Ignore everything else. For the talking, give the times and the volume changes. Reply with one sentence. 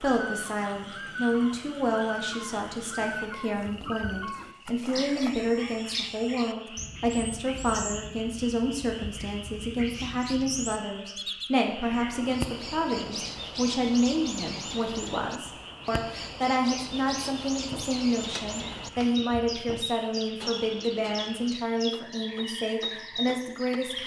You can hear the talking from 0.0 to 24.0 s, at a steady volume.